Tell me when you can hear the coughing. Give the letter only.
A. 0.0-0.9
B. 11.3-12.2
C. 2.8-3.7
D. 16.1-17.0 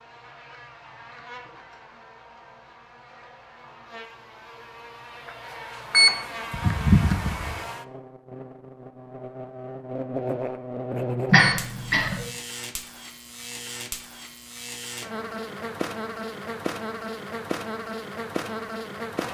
B.